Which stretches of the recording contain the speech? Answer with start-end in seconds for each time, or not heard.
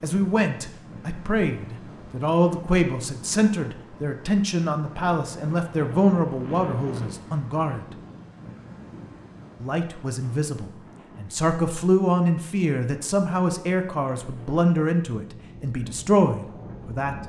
0.0-7.8, 9.6-17.1.